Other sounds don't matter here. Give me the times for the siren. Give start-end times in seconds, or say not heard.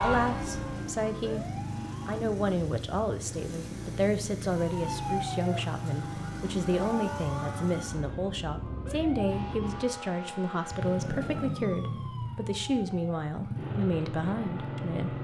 0.0-2.2, 4.5-15.1.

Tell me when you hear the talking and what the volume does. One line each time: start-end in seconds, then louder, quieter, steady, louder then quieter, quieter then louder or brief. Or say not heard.
0.0-15.2 steady.